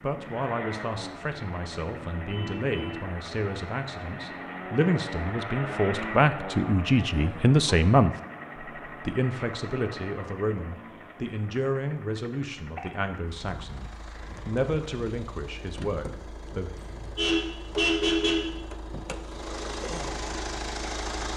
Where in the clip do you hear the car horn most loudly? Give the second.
18 s.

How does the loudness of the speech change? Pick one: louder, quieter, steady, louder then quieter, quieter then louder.
louder then quieter.